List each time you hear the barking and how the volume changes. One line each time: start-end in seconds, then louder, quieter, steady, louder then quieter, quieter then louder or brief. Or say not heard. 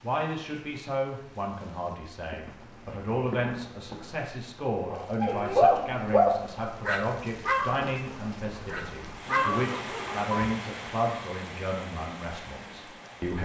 4.9-10.6 quieter then louder.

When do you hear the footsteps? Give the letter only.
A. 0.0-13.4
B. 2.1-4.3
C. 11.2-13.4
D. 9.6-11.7
B.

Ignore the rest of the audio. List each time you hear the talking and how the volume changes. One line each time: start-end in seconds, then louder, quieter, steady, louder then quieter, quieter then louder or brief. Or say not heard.
0.0-13.4 steady.